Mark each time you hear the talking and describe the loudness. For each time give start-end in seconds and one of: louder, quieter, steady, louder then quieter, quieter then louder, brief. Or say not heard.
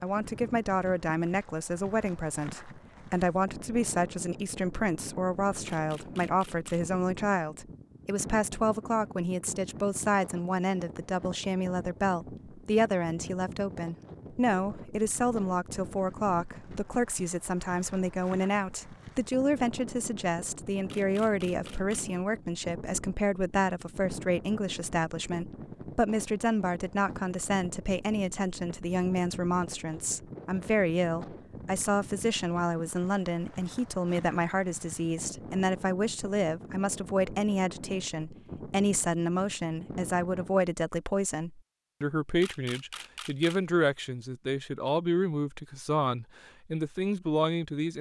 0.0-47.9 steady.